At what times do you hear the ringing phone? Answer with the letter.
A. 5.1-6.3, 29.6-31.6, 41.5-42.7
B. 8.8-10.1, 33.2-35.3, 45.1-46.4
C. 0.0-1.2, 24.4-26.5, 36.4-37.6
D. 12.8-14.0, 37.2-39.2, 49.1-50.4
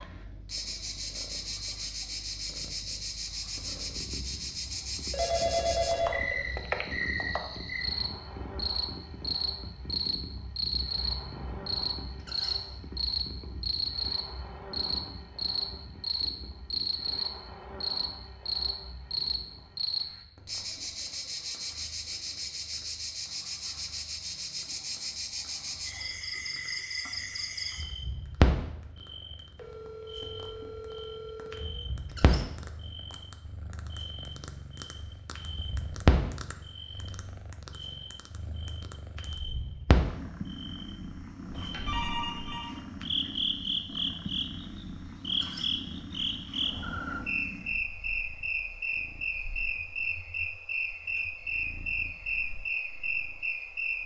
A.